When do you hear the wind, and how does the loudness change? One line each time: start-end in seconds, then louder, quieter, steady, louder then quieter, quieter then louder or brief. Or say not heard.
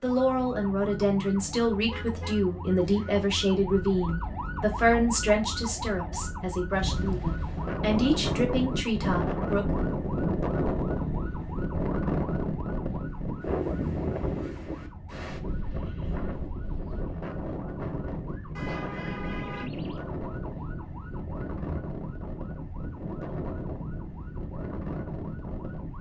6.7-25.9 quieter.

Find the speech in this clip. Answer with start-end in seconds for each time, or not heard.
0.0-9.7.